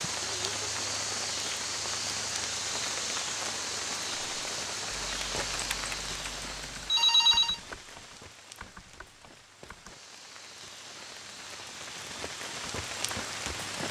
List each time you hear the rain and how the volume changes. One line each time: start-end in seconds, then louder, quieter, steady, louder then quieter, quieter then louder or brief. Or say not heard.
0.0-13.8 quieter then louder.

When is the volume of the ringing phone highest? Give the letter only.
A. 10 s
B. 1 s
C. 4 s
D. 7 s
D.